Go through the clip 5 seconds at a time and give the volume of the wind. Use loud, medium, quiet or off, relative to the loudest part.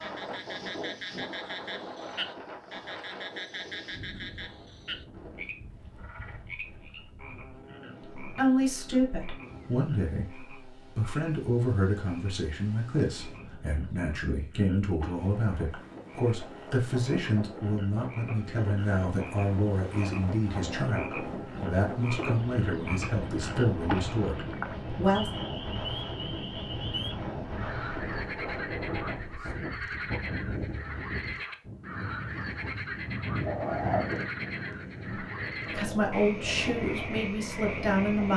medium, quiet, quiet, medium, loud, loud, loud, loud.